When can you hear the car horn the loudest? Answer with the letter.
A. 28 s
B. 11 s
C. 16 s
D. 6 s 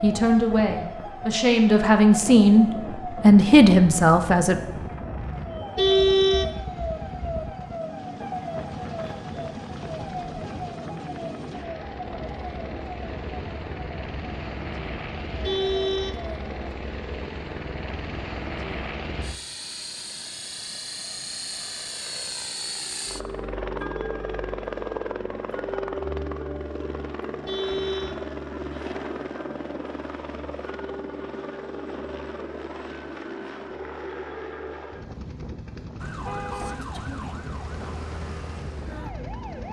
D.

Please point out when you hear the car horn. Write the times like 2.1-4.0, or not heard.
5.8-7.5, 15.4-16.1, 27.4-28.1.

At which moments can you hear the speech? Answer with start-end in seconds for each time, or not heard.
0.0-4.6.